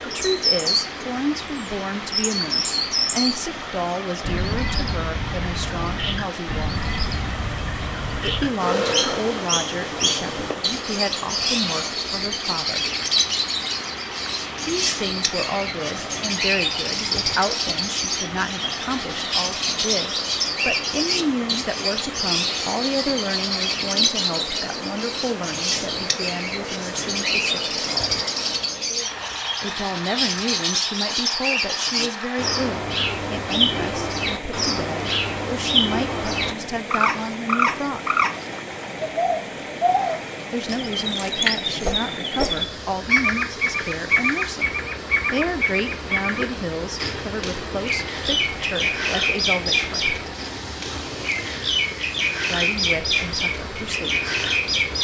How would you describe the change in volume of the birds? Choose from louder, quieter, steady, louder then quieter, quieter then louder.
steady.